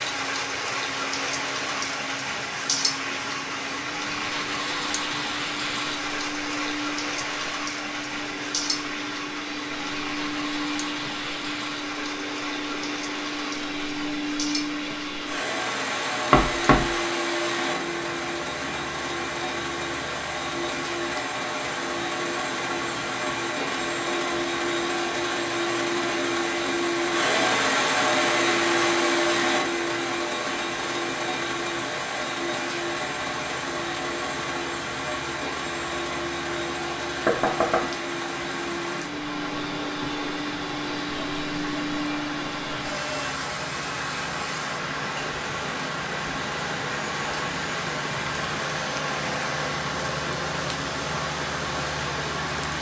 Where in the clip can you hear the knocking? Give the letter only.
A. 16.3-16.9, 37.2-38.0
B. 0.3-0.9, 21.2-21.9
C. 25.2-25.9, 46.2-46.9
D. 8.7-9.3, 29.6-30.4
A.